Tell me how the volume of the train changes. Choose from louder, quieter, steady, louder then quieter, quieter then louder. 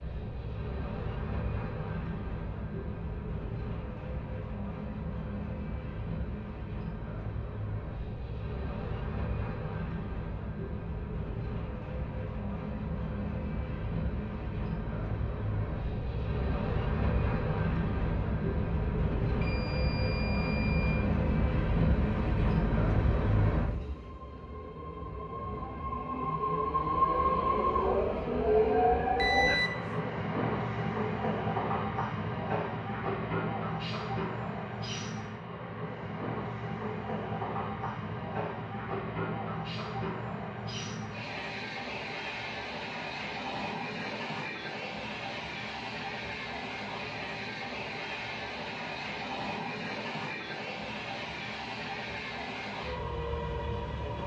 louder then quieter.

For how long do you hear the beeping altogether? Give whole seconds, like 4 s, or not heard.
2 s.